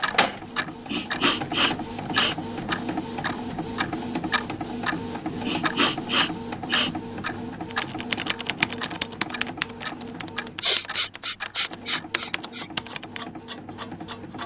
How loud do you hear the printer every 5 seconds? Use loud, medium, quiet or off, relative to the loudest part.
loud, loud, medium.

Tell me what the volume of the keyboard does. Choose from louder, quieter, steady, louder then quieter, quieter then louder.
quieter then louder.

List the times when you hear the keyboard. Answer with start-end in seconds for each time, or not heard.
7.7-13.2.